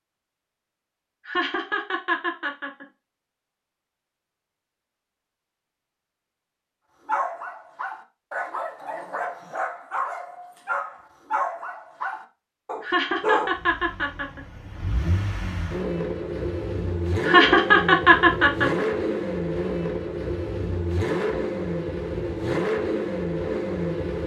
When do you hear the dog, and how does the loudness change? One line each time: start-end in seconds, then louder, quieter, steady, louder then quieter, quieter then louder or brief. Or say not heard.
7.0-13.6 steady.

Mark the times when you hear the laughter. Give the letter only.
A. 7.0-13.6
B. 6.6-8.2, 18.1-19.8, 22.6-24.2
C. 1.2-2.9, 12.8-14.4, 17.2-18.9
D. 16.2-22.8
C.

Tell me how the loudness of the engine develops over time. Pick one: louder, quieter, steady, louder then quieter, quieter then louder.
louder.